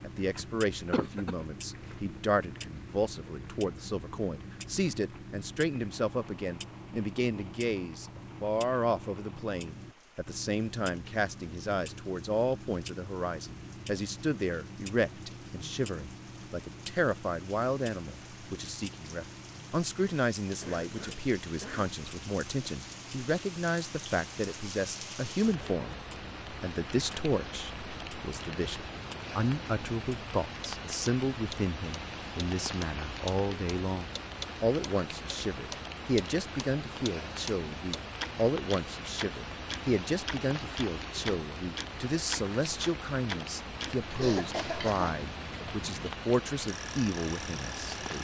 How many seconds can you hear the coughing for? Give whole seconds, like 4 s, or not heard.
3 s.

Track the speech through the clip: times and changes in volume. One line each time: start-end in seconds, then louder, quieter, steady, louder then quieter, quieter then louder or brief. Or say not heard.
0.0-48.2 steady.